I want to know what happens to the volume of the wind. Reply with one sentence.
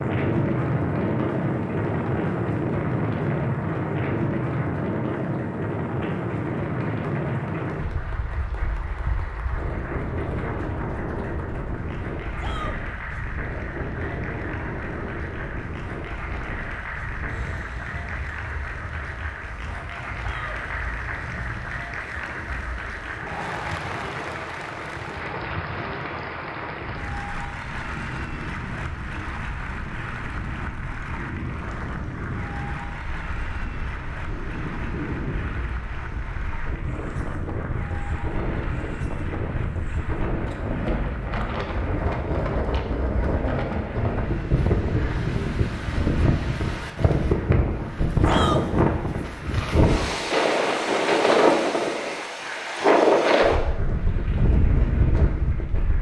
The volume of the wind goes down, then up.